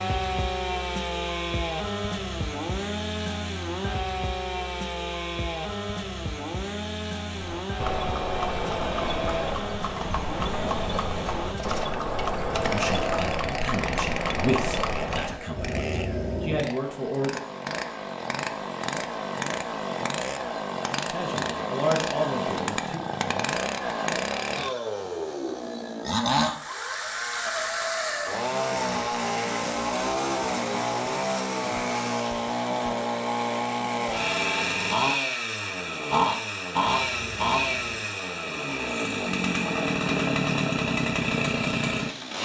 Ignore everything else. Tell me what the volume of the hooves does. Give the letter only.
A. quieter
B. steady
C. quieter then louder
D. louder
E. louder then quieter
B.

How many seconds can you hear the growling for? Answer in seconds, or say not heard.
2 s.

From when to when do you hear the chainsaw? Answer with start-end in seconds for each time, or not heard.
0.0-42.4.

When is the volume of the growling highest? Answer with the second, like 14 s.
16 s.